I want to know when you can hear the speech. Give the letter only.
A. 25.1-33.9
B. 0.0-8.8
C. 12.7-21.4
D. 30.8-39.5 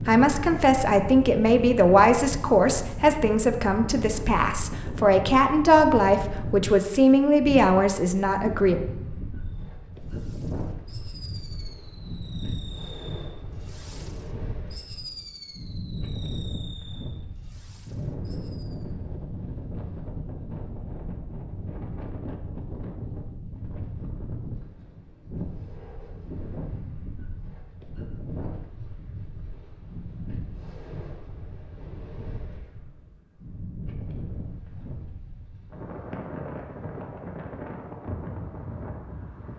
B.